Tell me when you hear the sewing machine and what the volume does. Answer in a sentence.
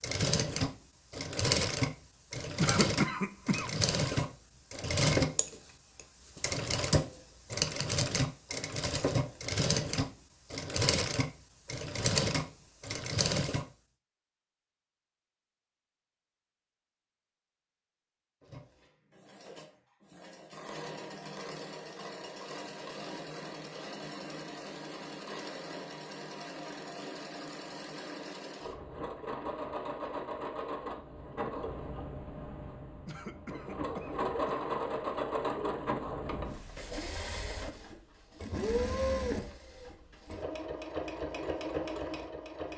You can hear the sewing machine from 0.0 to 13.7 s, at a steady volume; and from 18.4 to 42.7 s, getting louder.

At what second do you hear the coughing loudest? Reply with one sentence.
The loudest moment of the coughing is at 3 seconds.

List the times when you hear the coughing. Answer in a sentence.
You can hear the coughing from 2.5 to 4.2 s and from 33.0 to 34.6 s.